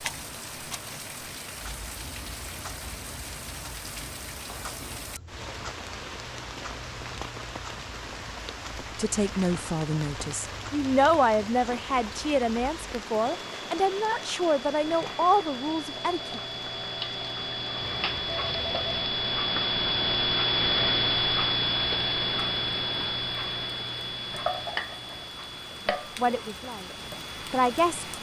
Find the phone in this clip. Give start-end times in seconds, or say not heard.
4.5-5.1, 17.8-19.1.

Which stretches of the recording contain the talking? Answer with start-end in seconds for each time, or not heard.
8.9-16.4, 25.9-26.9, 27.5-28.1.